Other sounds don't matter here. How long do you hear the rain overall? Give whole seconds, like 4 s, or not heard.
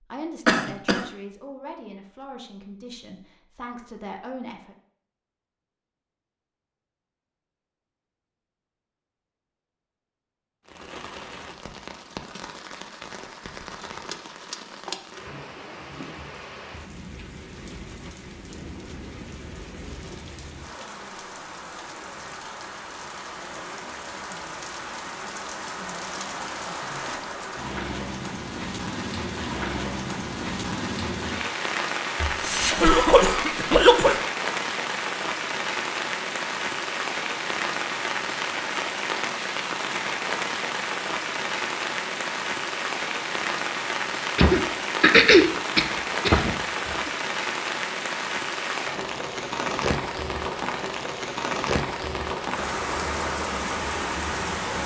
44 s.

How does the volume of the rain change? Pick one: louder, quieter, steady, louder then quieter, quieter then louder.
louder.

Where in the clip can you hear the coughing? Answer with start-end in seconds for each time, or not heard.
0.5-1.1, 32.2-34.2, 44.4-47.1.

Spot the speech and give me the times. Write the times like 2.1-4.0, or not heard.
0.1-4.8.